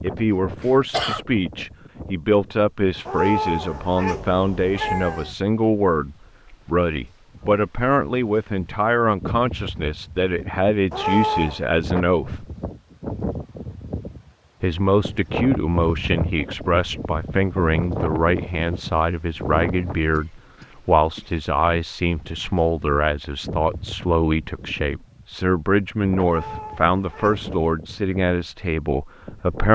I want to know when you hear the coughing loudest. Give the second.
1 s.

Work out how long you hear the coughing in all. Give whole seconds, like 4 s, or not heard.
2 s.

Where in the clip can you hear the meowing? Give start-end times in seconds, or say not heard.
3.0-5.3, 10.9-11.7, 26.2-27.5.